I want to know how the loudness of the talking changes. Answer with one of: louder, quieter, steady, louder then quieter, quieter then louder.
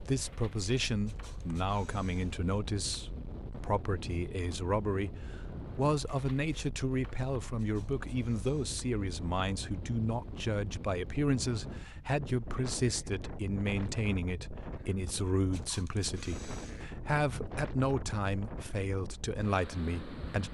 steady.